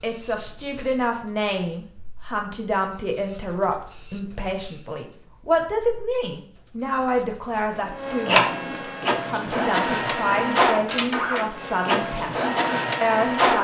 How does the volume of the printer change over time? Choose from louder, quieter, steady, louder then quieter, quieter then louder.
louder.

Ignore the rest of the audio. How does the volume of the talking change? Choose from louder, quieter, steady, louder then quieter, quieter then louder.
steady.